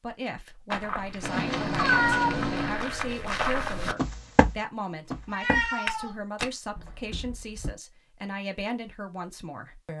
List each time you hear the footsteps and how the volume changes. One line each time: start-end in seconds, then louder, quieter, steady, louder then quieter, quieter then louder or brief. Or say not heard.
0.7-7.7 louder then quieter.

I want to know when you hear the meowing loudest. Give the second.
2 s.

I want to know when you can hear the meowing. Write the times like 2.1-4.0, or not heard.
1.2-2.9, 5.3-6.2.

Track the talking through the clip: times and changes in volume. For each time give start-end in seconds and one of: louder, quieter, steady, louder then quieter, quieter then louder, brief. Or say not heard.
0.0-9.9 steady.